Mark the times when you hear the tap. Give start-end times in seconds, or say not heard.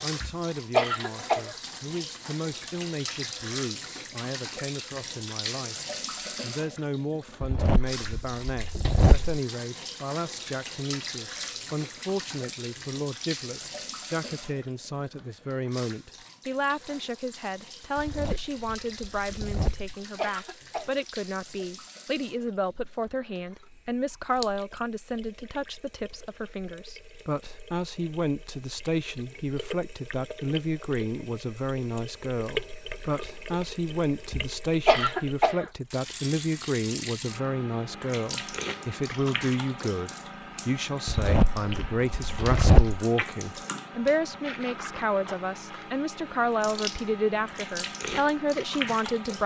0.0-49.4.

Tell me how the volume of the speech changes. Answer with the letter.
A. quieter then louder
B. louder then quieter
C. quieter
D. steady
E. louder
E.